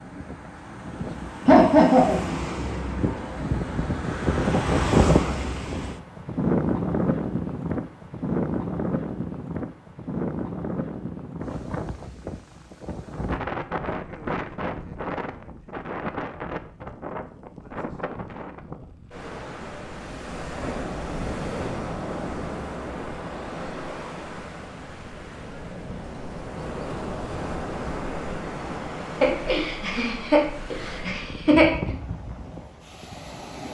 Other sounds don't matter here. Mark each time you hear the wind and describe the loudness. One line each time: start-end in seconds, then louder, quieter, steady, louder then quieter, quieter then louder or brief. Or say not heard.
0.0-33.6 quieter.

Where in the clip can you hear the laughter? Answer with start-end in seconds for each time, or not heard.
1.4-2.2, 29.2-31.7.